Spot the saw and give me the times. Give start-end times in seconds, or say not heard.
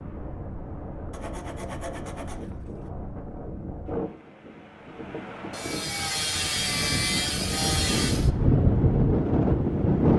1.1-2.9, 5.5-8.3.